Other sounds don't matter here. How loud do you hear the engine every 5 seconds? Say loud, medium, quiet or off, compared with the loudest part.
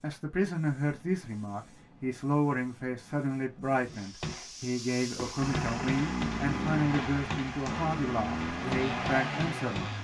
off, loud.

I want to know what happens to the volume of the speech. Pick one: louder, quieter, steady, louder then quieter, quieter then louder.
steady.